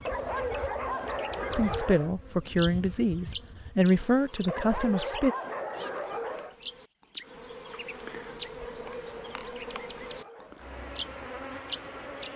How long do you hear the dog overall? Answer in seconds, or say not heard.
6 s.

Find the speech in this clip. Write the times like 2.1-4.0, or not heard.
1.5-5.3.